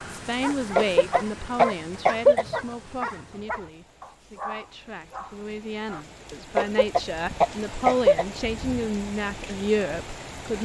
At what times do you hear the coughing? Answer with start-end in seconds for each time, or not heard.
0.8-2.5, 6.5-8.2.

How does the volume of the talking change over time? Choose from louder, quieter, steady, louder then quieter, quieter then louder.
quieter then louder.